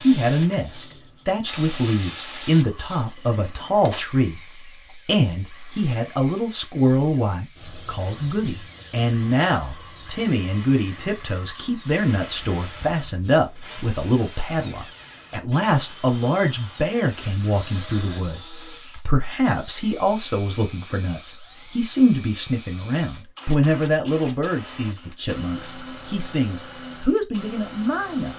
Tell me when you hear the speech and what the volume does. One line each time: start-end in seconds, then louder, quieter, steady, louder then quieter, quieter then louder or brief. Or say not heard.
0.0-4.4 steady
5.0-28.3 steady.